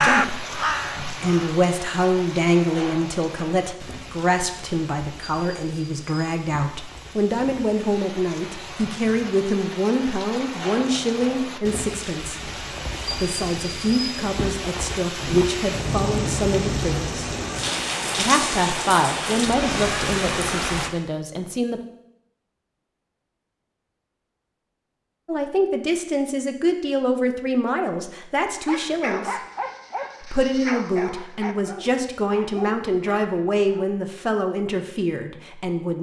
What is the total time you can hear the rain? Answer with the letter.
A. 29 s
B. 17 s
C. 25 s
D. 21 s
D.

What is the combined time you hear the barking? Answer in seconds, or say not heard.
5 s.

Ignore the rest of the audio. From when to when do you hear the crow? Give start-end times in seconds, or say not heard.
0.0-1.6.